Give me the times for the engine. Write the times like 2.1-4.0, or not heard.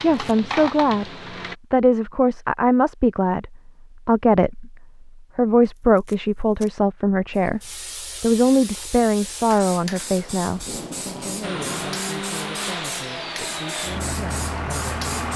0.0-1.6, 11.4-15.3.